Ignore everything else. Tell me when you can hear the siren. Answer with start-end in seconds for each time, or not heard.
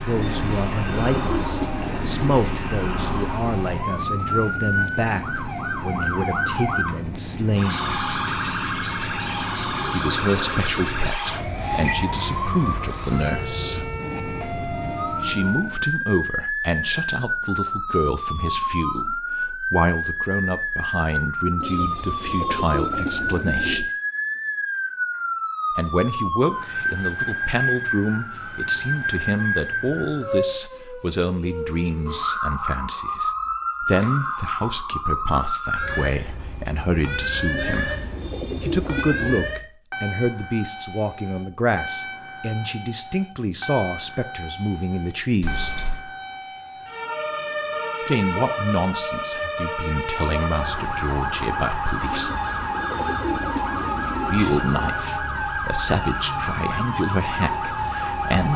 0.0-58.5.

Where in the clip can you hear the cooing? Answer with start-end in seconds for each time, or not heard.
0.1-2.4, 21.6-23.9, 37.5-39.5, 52.1-54.7.